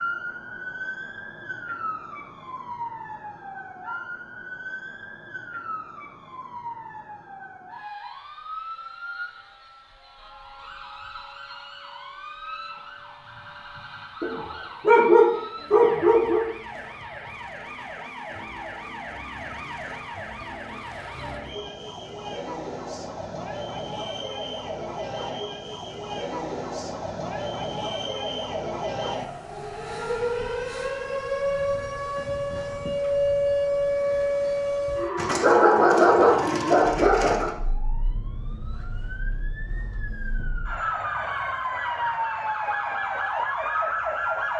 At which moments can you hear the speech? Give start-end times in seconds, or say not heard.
not heard.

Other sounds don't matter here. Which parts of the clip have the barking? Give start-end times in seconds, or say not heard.
14.2-16.4, 35.1-37.5.